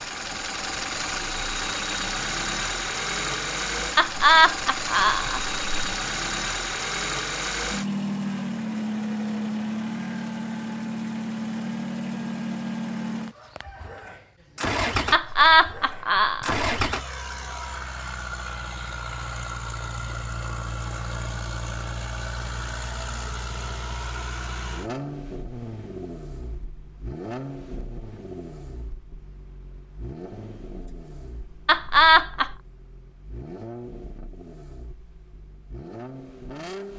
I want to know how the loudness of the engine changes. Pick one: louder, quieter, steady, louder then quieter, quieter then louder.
quieter.